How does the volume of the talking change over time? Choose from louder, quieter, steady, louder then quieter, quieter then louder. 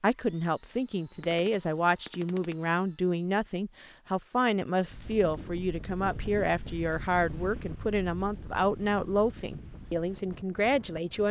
steady.